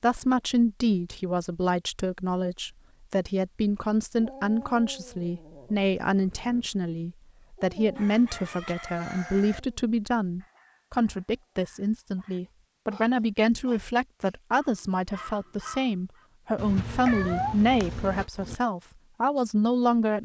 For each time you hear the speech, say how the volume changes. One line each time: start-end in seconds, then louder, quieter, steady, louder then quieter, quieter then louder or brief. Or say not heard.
0.0-20.2 steady.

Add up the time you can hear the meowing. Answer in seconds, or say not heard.
2 s.